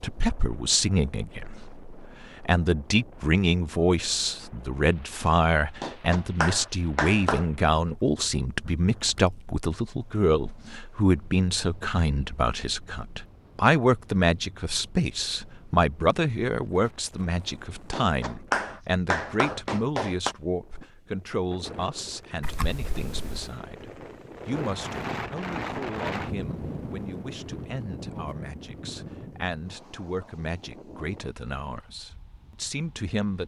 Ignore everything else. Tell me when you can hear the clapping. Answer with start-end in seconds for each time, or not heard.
5.8-7.5, 17.9-20.4.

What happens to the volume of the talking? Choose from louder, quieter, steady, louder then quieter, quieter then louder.
quieter.